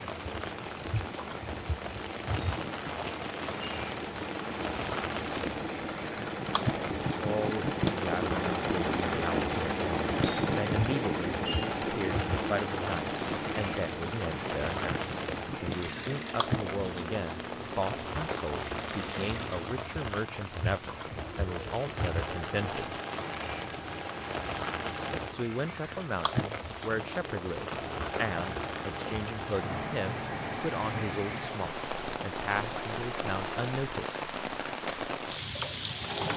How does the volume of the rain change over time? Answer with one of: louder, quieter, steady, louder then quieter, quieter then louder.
steady.